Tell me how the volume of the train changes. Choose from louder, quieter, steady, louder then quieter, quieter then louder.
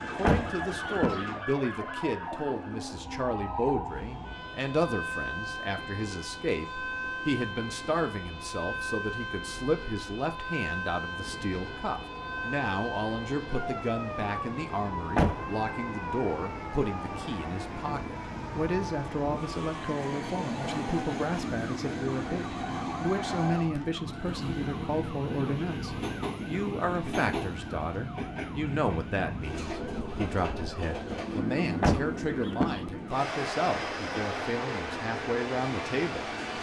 louder.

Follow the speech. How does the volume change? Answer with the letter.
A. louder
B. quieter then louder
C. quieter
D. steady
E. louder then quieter
D.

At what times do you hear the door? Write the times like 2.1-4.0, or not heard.
0.2-1.2, 15.2-15.6, 31.8-32.9.